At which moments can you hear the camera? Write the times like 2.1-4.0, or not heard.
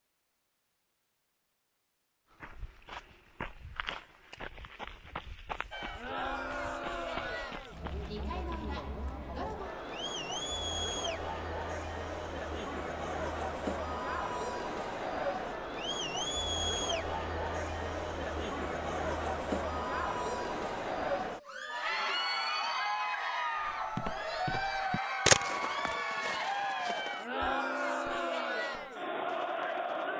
25.2-25.9.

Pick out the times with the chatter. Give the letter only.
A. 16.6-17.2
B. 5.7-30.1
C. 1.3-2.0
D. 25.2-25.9
B.